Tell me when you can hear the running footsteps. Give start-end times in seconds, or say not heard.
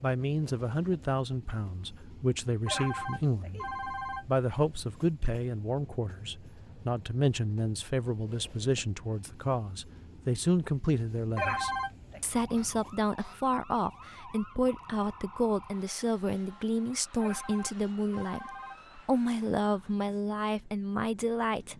not heard.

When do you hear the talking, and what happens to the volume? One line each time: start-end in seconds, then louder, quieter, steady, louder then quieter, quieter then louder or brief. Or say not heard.
0.0-21.7 steady.